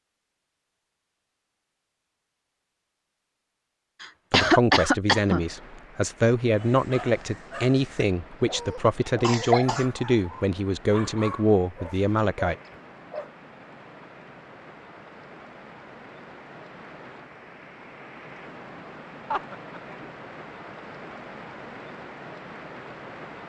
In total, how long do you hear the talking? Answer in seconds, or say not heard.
8 s.